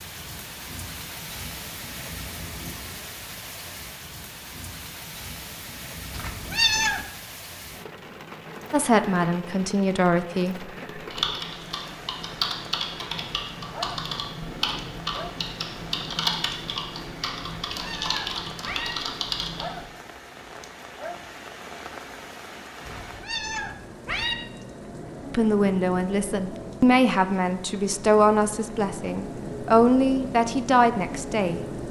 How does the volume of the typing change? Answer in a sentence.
The loudness of the typing stays about the same.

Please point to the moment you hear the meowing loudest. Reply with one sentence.
The volume of the meowing peaks at 7 seconds.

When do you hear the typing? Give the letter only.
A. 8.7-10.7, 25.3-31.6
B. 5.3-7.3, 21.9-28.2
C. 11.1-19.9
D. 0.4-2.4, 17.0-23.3
C.